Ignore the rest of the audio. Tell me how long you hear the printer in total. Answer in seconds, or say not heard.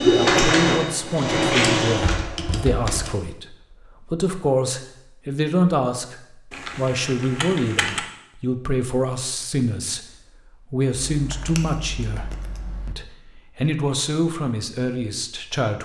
2 s.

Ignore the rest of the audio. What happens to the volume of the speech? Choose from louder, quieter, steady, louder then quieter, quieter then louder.
steady.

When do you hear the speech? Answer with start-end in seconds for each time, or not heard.
0.1-10.1, 10.7-15.7.